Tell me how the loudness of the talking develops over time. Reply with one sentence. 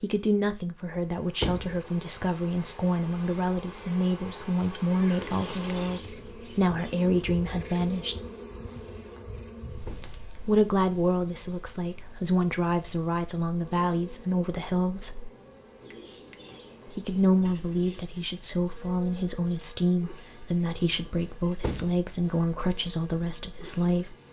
The volume of the talking stays about the same.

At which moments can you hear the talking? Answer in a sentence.
The talking can be heard from 0.0 to 8.2 s, from 10.4 to 15.3 s and from 16.9 to 24.1 s.